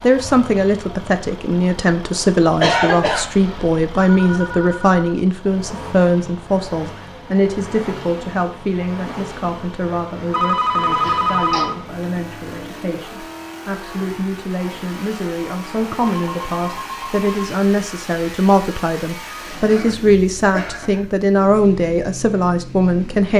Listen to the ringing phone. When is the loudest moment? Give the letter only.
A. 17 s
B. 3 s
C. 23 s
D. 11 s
D.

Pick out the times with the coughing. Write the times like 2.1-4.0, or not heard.
2.6-3.8, 11.0-11.7, 19.5-21.1.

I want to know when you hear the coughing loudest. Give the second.
3 s.